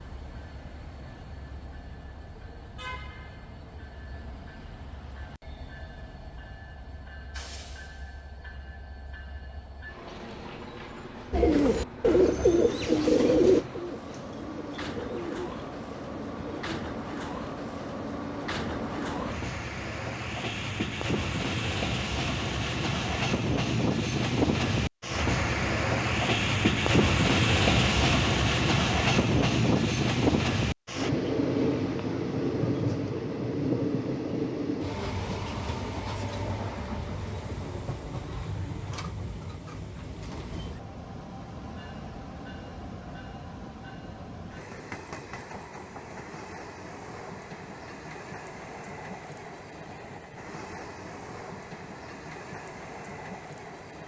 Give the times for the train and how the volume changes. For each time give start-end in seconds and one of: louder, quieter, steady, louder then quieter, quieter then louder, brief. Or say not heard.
0.0-54.0 louder then quieter.